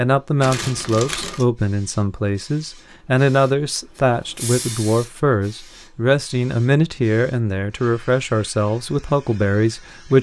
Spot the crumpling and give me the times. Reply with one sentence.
The crumpling can be heard from 0.4 to 1.4 s.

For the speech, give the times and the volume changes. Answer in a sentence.
The speech can be heard from 0.0 to 10.1 s, at a steady volume.